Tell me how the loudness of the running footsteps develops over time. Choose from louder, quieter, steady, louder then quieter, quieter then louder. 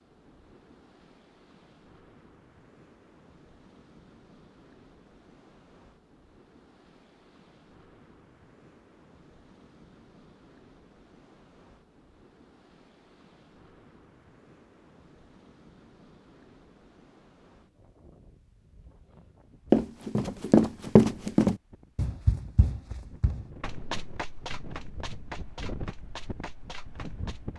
quieter.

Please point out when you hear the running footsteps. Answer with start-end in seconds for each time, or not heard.
19.7-27.5.